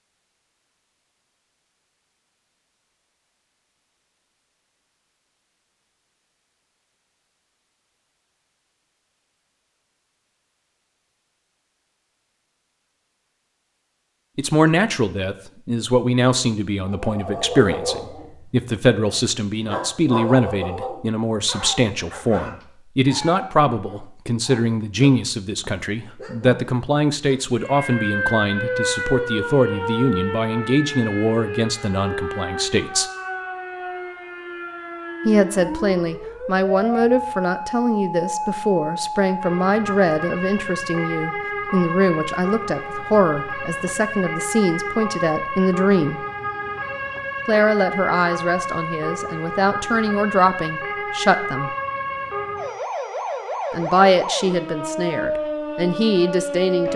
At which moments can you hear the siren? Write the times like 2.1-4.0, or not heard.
27.6-56.9.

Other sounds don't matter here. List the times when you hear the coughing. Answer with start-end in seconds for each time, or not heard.
not heard.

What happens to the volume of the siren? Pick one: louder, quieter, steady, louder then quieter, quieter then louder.
steady.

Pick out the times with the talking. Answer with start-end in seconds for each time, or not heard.
14.3-33.1, 35.2-46.2, 47.5-51.7, 53.7-56.9.